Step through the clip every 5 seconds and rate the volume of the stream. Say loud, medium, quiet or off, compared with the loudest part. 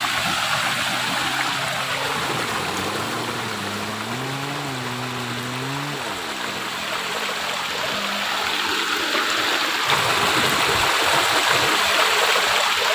medium, medium, loud.